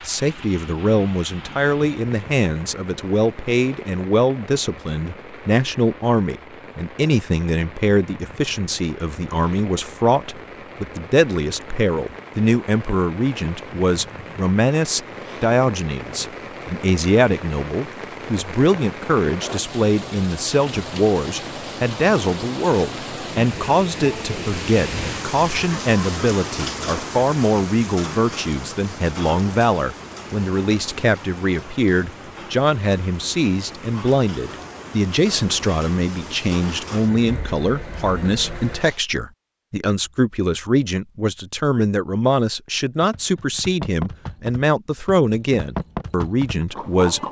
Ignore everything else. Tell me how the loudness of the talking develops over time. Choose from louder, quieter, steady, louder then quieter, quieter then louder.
steady.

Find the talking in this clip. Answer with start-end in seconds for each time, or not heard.
0.0-47.2.